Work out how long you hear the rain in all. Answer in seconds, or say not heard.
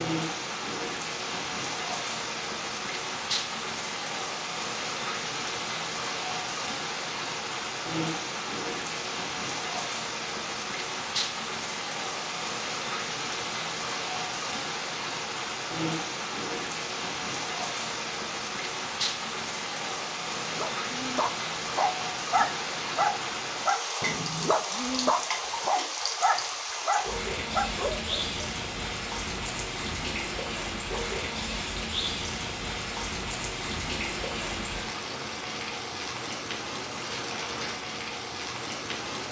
39 s.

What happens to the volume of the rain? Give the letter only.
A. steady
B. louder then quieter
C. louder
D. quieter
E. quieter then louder
A.